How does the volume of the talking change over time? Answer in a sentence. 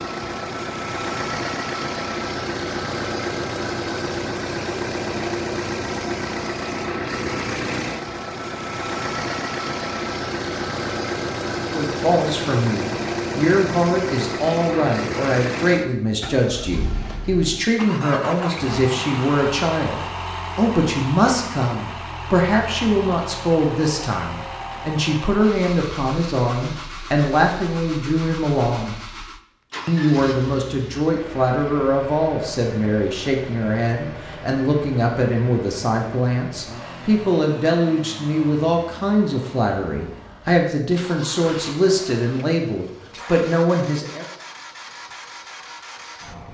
The loudness of the talking stays about the same.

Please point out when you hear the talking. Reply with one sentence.
The talking can be heard from 11.6 to 28.9 s and from 29.9 to 44.2 s.